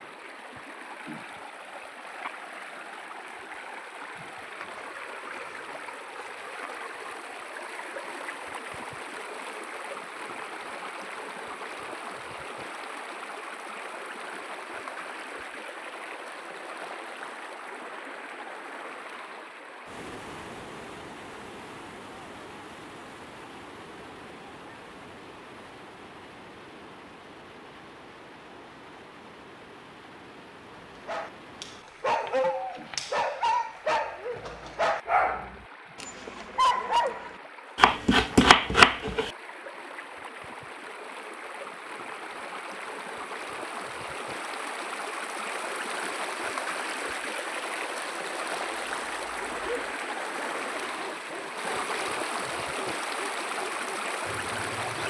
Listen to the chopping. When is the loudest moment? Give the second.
39 s.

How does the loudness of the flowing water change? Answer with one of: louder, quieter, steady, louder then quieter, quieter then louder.
quieter then louder.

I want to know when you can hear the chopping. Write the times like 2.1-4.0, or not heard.
4.6-6.5, 32.2-33.1, 37.8-39.3.